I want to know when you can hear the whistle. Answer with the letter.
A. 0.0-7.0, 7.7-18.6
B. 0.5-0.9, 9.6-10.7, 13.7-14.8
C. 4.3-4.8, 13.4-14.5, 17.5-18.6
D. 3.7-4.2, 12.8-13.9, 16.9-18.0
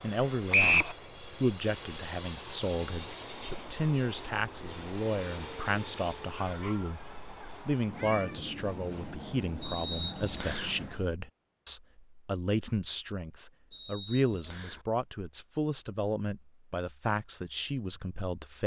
B.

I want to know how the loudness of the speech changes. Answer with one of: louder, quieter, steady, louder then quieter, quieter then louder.
steady.